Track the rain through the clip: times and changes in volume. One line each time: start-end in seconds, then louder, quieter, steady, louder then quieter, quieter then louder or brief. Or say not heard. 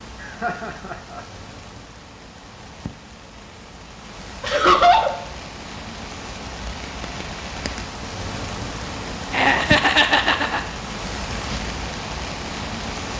0.0-13.1 louder.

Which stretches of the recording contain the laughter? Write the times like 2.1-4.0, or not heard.
0.2-1.2, 4.4-5.2, 9.3-10.6.